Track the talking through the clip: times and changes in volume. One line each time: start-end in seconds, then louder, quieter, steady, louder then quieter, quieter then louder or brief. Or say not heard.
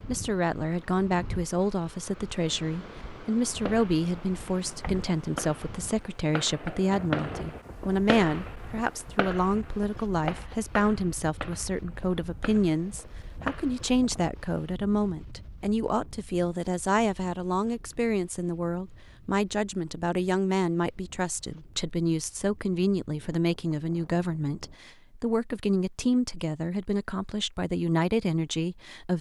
0.1-29.1 steady.